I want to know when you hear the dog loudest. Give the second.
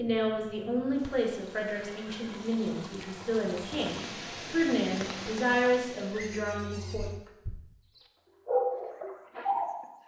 9 s.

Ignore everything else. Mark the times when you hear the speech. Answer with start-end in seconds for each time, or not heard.
0.0-7.0.